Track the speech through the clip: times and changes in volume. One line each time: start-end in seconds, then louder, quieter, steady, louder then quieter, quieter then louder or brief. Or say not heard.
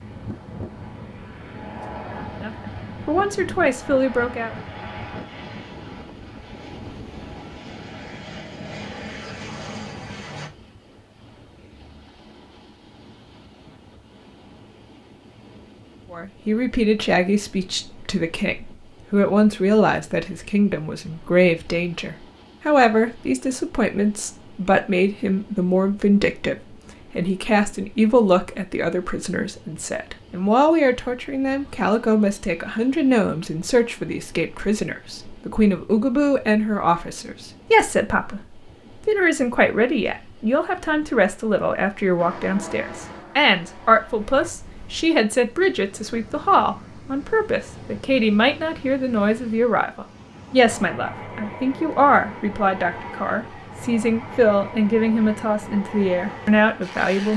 2.4-4.5 brief
16.1-57.3 steady.